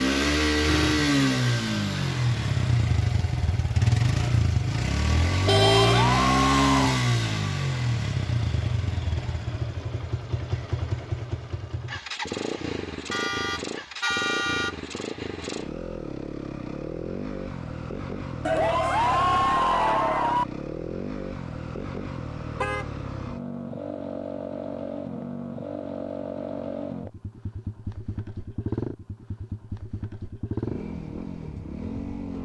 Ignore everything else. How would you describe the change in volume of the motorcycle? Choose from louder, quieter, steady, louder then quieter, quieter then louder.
quieter.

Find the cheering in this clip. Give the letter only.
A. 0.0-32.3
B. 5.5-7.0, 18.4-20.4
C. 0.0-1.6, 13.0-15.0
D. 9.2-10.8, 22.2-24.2
B.